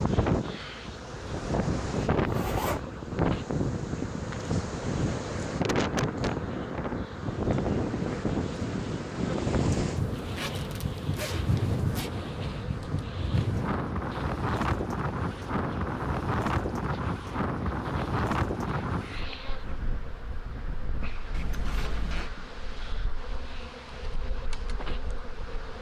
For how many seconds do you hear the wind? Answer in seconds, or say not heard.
26 s.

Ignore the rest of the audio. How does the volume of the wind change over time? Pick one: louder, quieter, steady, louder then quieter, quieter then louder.
quieter.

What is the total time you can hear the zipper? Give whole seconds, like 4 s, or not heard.
4 s.